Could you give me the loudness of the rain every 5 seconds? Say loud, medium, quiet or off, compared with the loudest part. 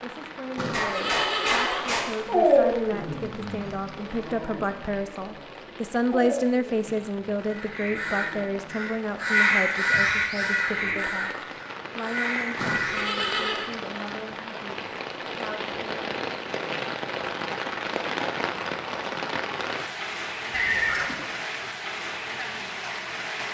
medium, quiet, medium, loud, loud.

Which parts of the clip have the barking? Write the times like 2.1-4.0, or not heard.
0.7-8.7.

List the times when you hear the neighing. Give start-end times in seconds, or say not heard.
0.6-2.0, 12.6-13.7, 20.5-21.2.